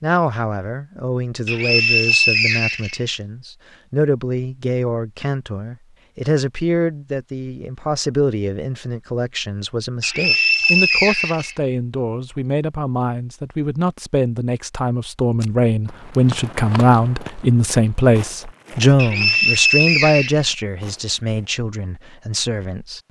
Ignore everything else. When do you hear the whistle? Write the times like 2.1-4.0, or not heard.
1.4-3.0, 10.0-11.6, 18.9-20.4.